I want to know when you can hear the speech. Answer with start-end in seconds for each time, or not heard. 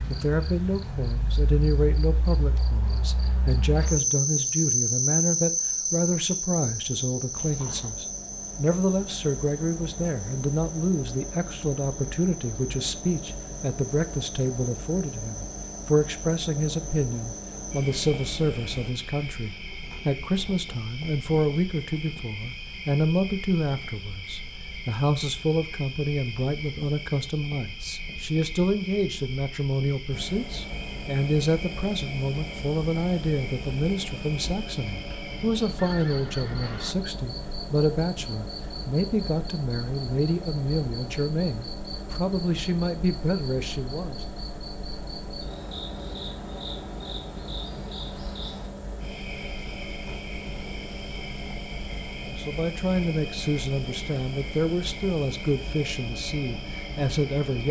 0.1-44.2, 52.2-57.6.